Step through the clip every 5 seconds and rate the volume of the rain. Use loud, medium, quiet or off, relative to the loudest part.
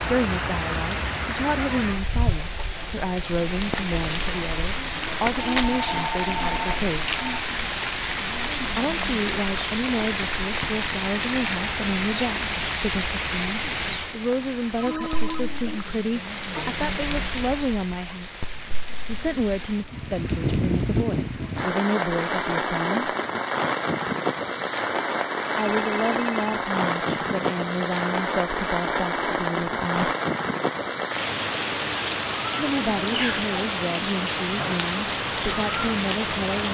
loud, loud, loud, medium, loud, loud, loud, loud.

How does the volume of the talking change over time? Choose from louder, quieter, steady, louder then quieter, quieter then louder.
steady.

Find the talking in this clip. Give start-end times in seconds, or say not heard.
0.0-7.2, 8.7-18.4, 19.1-23.1, 25.6-30.1, 32.5-36.6.